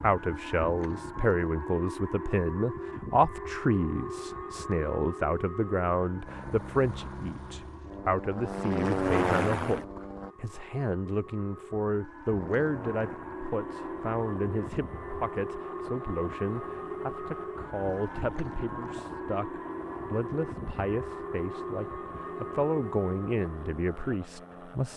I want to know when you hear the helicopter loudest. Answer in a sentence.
The volume of the helicopter peaks at 9 seconds.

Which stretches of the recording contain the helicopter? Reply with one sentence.
You can hear the helicopter from 6.2 to 10.3 s and from 12.3 to 24.9 s.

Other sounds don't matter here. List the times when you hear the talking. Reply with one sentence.
The talking can be heard from 0.0 to 24.9 s.